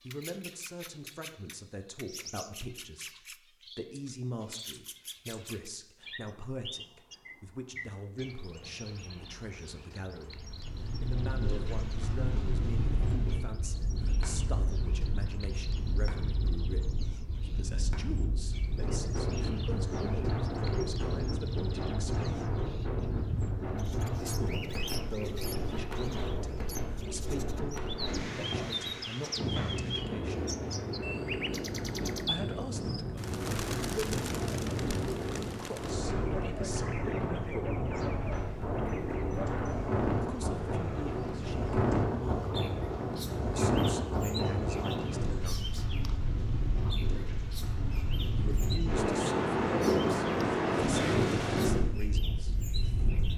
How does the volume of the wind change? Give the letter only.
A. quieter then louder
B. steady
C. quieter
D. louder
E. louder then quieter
D.